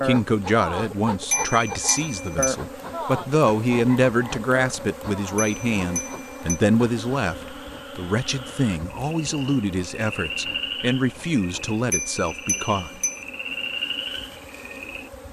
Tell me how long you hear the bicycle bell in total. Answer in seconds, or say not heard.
4 s.